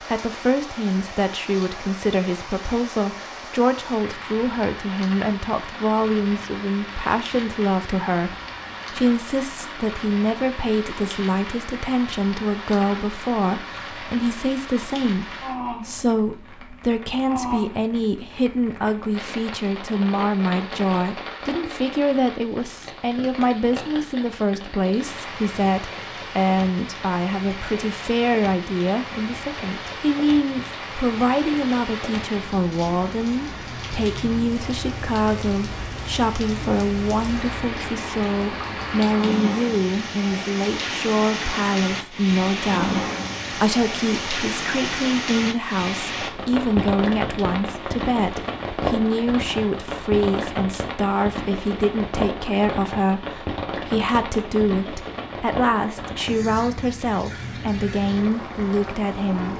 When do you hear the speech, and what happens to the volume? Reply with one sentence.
You can hear the speech from 0.0 to 59.5 s, at a steady volume.